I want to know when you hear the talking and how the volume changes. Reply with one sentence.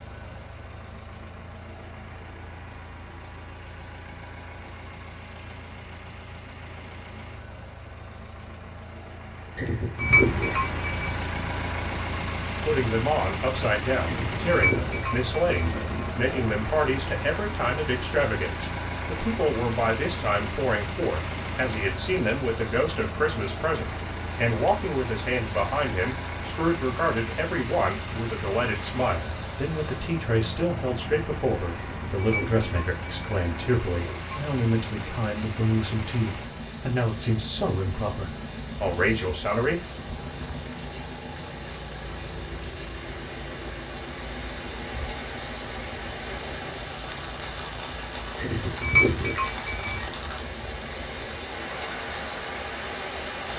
The talking can be heard from 12.6 to 39.9 s, at a steady volume.